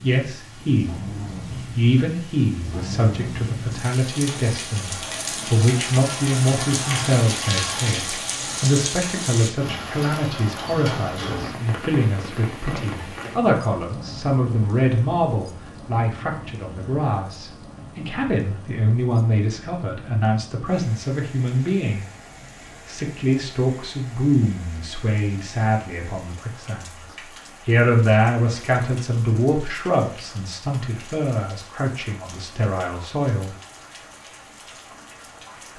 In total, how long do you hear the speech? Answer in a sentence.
You can hear the speech for 32 seconds altogether.